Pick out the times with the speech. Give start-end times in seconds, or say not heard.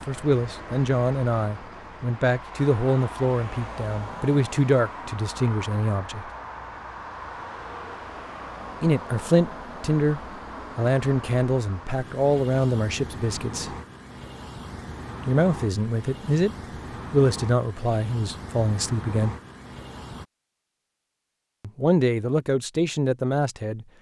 0.1-6.3, 8.8-13.8, 15.2-19.4, 21.6-23.9.